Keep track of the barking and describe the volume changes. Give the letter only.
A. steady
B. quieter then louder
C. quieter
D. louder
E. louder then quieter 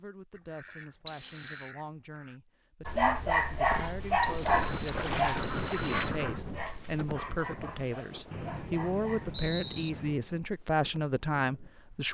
C.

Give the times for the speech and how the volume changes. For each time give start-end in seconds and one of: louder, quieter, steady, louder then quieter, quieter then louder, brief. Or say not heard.
0.0-12.0 louder.